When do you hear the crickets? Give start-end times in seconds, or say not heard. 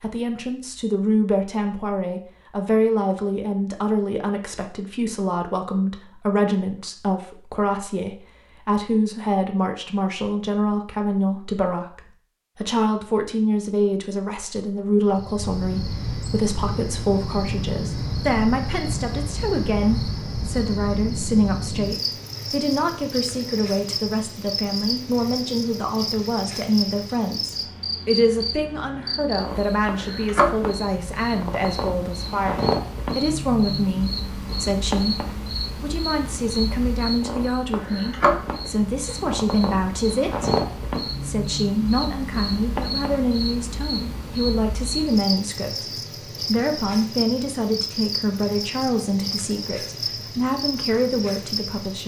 15.1-52.0.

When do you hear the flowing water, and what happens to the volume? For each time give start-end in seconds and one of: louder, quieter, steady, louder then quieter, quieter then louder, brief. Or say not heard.
not heard.